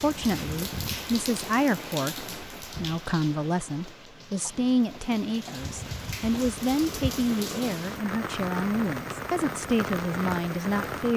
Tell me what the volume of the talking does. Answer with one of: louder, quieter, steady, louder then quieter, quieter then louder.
steady.